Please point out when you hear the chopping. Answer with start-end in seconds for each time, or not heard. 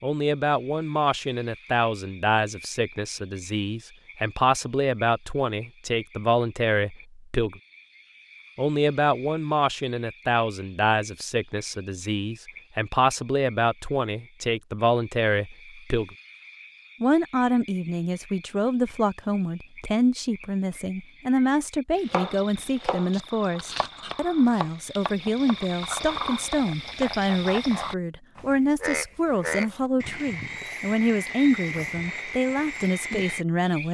22.1-27.2.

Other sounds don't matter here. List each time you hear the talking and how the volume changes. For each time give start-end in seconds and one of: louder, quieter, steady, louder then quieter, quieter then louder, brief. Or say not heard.
0.0-7.6 steady
8.6-16.1 steady
17.0-33.8 steady.